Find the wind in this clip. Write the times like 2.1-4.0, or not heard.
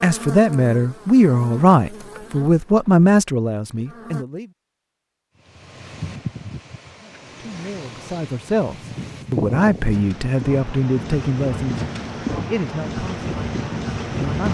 5.3-14.4.